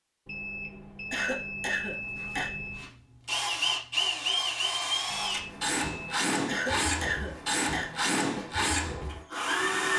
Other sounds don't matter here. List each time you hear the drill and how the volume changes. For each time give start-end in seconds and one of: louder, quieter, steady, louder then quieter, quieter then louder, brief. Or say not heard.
2.0-9.9 steady.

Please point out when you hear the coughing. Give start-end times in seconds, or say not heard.
1.1-2.5, 6.5-7.9.